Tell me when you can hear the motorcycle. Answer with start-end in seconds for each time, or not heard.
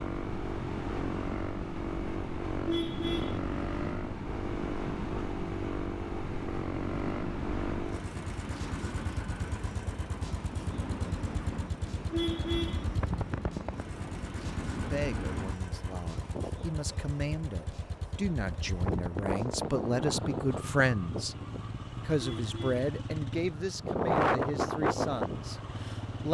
0.0-26.2.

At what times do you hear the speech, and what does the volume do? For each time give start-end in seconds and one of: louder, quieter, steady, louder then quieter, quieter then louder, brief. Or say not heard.
14.8-21.4 louder
22.1-26.2 quieter.